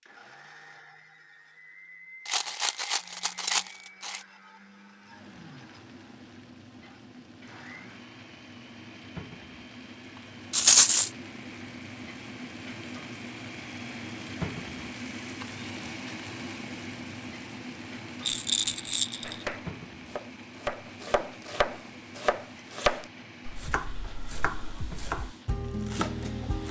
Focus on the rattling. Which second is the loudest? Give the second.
11 s.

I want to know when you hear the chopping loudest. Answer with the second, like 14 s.
23 s.